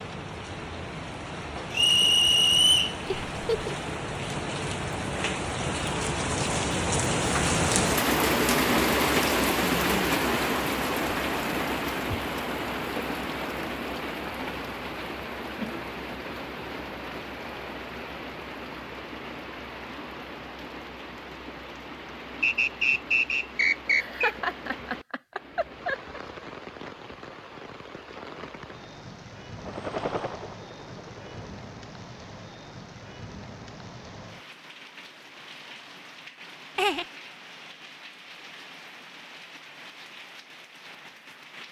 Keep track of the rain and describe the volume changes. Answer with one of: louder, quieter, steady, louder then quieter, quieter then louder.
quieter.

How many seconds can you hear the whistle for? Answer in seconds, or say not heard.
3 s.